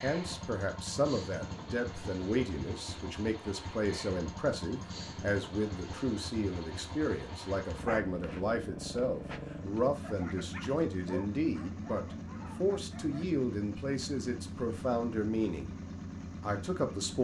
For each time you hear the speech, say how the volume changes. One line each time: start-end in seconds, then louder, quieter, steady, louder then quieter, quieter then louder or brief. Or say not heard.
0.0-15.8 steady
16.4-17.2 brief.